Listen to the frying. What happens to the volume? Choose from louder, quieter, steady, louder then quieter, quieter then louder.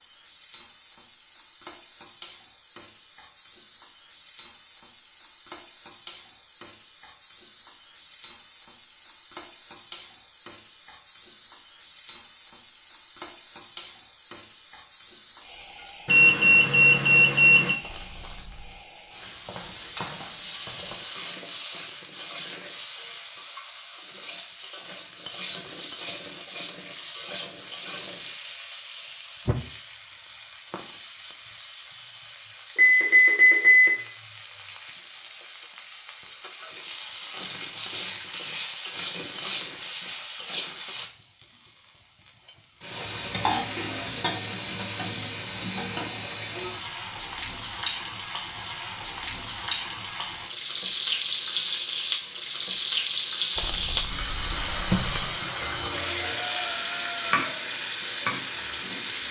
louder.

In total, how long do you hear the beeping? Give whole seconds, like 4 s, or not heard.
4 s.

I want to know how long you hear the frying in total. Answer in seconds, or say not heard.
59 s.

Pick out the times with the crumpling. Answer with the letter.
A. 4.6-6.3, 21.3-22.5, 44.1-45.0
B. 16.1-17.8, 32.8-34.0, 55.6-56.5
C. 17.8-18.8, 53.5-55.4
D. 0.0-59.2
C.